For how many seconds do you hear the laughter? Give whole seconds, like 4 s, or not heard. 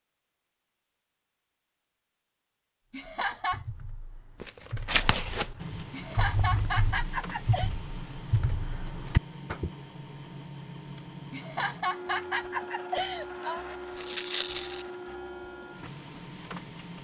5 s.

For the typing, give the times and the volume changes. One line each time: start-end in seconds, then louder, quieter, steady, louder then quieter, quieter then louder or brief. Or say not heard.
3.2-9.7 louder.